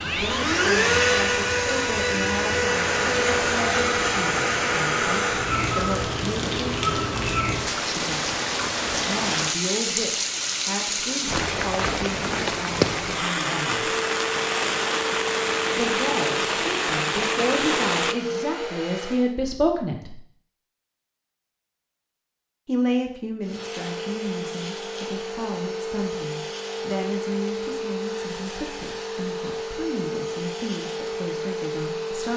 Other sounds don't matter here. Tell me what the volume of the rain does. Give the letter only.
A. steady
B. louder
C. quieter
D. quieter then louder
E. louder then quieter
B.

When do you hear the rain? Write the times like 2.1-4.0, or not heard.
0.0-18.1.